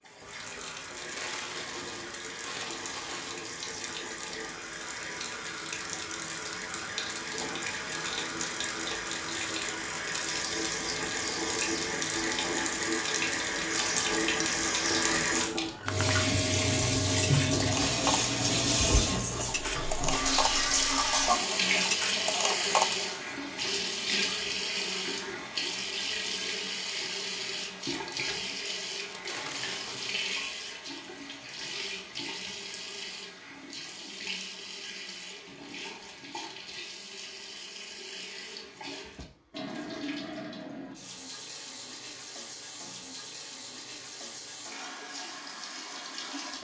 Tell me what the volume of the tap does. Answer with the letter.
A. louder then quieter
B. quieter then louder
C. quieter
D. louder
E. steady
A.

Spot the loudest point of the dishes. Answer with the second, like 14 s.
23 s.